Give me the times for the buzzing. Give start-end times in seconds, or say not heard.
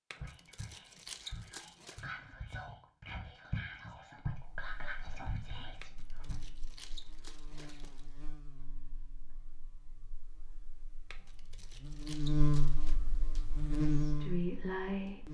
4.3-15.2.